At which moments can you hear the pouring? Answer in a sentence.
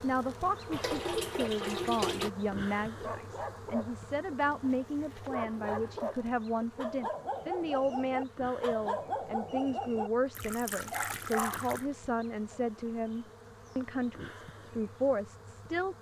You can hear the pouring from 0.7 to 2.3 s and from 10.3 to 11.9 s.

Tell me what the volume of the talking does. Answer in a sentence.
The loudness of the talking stays about the same.